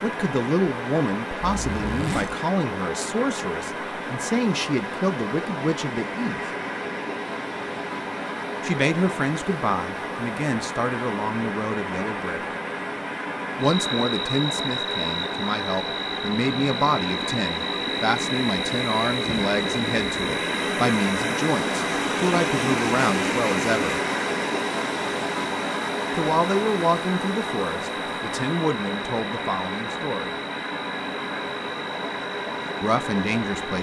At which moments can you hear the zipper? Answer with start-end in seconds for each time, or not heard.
1.4-2.4.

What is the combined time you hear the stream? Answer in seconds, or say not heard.
34 s.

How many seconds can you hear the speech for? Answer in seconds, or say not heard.
26 s.